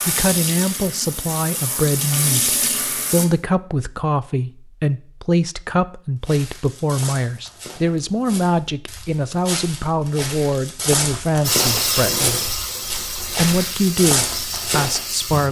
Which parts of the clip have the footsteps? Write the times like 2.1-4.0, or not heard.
6.2-15.0.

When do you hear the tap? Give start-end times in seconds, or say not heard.
0.0-3.2, 11.4-15.4.